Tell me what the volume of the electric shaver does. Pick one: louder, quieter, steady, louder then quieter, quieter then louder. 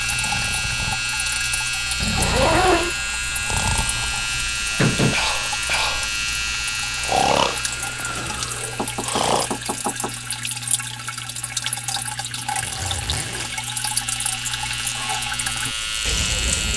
quieter then louder.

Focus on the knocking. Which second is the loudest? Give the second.
5 s.